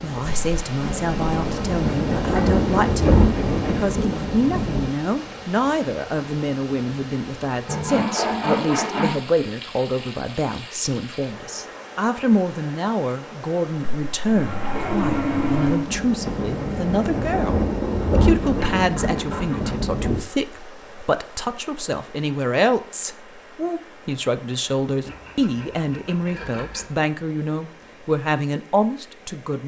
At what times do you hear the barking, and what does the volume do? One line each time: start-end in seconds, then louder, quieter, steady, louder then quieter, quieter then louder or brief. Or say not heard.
not heard.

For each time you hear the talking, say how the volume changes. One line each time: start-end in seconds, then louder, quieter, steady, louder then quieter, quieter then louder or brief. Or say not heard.
0.0-29.6 steady.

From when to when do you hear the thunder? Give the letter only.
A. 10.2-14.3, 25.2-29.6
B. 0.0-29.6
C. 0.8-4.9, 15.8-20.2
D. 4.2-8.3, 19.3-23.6
C.